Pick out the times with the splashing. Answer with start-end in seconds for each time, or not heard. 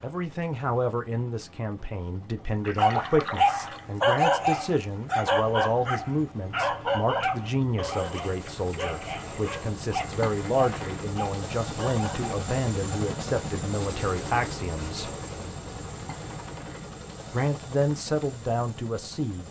2.6-3.9, 10.1-11.1, 15.9-16.9.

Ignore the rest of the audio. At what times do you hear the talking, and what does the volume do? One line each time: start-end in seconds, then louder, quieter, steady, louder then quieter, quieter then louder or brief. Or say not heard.
0.0-15.1 steady
17.3-19.4 brief.